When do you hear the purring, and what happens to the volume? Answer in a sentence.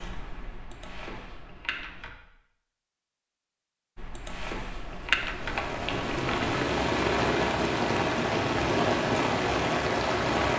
You can't hear the purring here.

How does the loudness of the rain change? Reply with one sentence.
The loudness of the rain goes up.